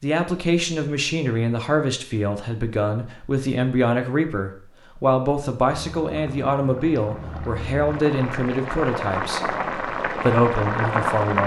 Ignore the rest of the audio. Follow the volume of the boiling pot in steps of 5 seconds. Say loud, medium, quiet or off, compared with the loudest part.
off, medium, loud.